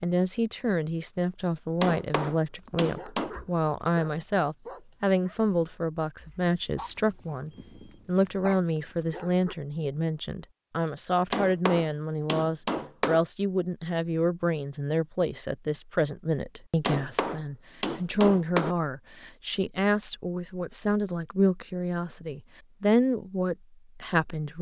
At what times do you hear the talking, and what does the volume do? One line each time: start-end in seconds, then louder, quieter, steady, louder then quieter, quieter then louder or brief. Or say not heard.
0.0-24.5 steady.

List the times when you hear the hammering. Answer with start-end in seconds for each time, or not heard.
1.8-3.4, 11.3-13.2, 16.9-18.8.